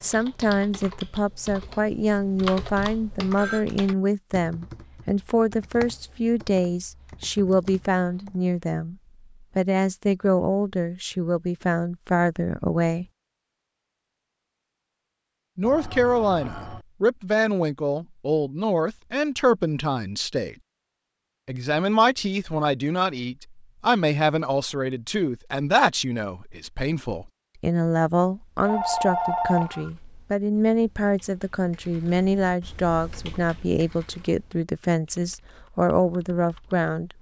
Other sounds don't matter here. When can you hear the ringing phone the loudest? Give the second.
29 s.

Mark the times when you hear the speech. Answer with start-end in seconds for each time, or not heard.
0.0-8.9, 9.6-13.1, 15.6-20.6, 21.4-37.1.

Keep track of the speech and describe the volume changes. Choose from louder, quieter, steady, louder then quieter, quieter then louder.
steady.